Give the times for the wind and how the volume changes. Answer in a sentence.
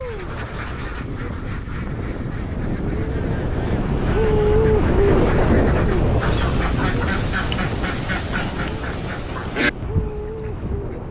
You can hear the wind from 0.0 to 11.0 s, getting louder then quieter.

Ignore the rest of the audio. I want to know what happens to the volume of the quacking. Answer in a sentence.
The volume of the quacking goes up.